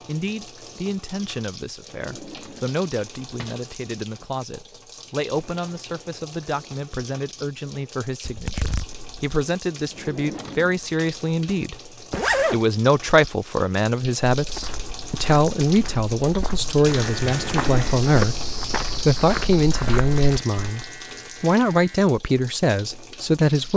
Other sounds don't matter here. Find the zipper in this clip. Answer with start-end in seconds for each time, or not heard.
8.2-9.3, 12.1-12.7.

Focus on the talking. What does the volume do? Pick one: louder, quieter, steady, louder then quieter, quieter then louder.
louder.